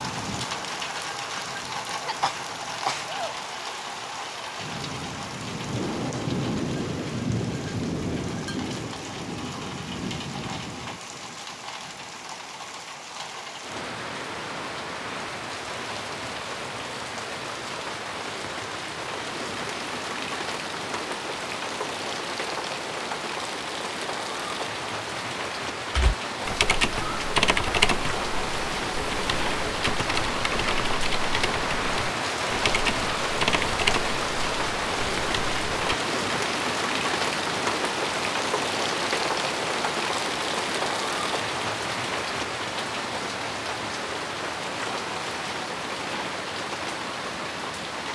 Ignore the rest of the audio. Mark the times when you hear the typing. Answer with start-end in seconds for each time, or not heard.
25.9-36.0.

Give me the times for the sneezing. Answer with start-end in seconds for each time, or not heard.
2.0-3.4.